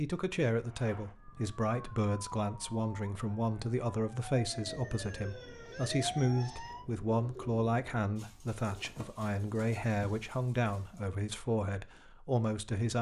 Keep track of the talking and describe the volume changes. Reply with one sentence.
The volume of the talking stays about the same.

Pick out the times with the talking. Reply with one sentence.
The talking can be heard from 0.0 to 12.9 s.